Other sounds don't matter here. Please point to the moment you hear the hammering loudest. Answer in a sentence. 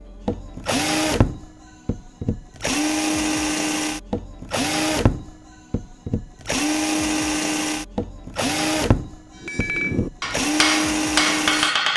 The volume of the hammering peaks at 11 seconds.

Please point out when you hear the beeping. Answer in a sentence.
The beeping can't be heard in this clip.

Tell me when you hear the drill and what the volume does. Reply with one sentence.
The drill can be heard from 0.0 to 11.8 s, at a steady volume.